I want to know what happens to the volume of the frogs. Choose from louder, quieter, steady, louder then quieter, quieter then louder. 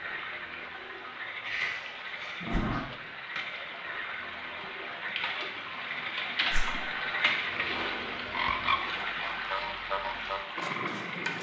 louder.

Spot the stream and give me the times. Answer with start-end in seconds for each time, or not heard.
0.0-11.3.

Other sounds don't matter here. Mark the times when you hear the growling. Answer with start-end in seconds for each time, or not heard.
1.4-2.9, 7.4-8.8.